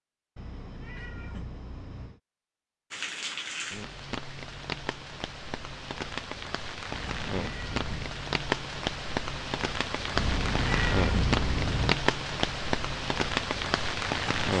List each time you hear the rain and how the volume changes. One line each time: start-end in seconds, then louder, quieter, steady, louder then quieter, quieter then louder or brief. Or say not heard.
2.9-14.5 louder.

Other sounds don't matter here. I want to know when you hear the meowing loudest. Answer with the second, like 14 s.
11 s.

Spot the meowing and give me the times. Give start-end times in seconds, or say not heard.
0.3-2.2, 6.9-8.2, 10.2-11.9.